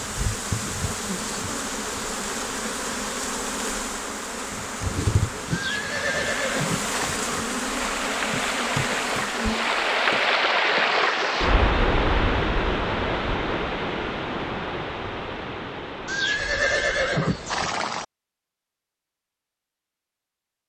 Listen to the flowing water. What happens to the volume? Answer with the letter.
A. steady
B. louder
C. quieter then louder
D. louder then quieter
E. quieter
D.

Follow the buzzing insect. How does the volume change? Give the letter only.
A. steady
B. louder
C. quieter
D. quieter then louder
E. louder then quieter
A.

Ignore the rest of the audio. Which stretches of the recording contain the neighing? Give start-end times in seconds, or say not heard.
5.5-7.1, 16.1-18.1.